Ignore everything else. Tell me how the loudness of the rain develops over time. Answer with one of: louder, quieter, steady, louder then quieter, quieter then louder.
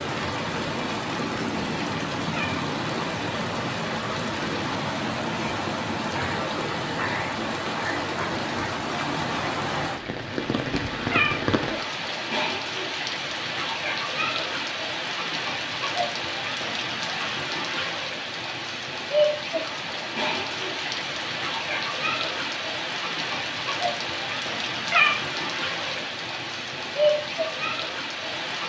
steady.